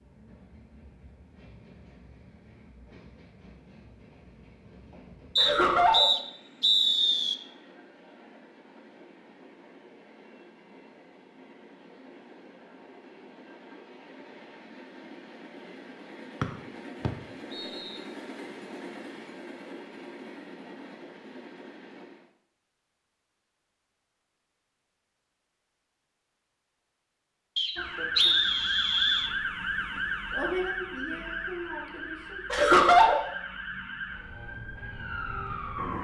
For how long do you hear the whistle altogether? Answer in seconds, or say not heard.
5 s.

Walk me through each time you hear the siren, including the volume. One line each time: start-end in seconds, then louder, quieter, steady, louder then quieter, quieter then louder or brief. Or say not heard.
27.8-35.9 quieter.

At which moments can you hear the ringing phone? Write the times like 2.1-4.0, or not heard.
not heard.